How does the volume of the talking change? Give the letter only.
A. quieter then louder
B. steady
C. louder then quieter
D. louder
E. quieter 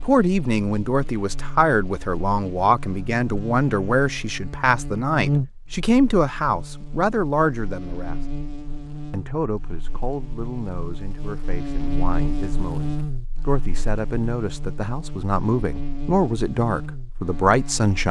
A.